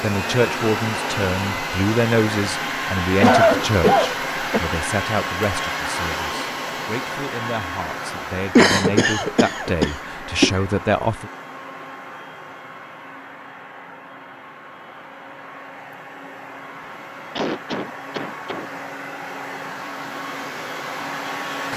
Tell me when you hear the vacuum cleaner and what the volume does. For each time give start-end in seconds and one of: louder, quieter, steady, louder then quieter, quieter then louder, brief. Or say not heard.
0.0-21.7 quieter then louder.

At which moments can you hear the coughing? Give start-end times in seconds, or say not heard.
3.2-4.6, 8.6-10.6, 17.4-18.7.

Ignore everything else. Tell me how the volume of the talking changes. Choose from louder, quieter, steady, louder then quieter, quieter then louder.
quieter then louder.